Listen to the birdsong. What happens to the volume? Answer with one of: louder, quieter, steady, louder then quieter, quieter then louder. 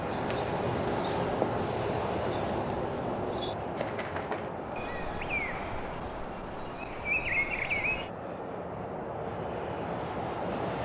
louder.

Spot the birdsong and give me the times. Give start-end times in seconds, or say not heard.
0.0-8.1.